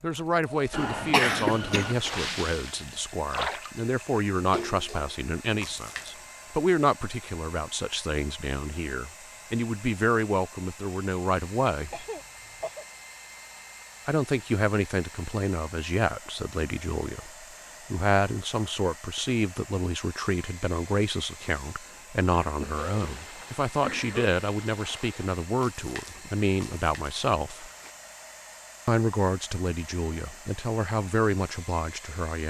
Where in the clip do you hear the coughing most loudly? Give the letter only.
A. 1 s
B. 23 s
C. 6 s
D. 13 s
A.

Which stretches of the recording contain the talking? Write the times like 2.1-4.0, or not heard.
0.0-12.1, 14.1-27.7, 28.9-32.4.